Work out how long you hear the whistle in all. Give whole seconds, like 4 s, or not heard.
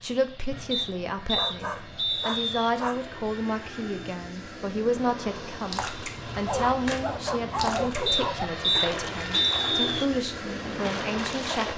4 s.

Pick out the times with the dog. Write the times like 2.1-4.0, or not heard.
1.4-3.0, 6.5-8.4.